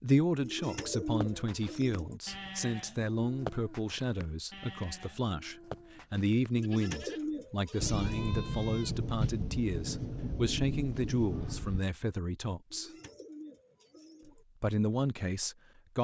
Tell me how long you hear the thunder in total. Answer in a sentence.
You can hear the thunder for 4 seconds altogether.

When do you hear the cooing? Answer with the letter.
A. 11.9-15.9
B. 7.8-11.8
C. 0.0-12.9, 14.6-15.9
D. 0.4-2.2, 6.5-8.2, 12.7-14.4
D.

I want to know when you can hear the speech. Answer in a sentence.
You can hear the speech from 0.0 to 12.9 s and from 14.6 to 15.9 s.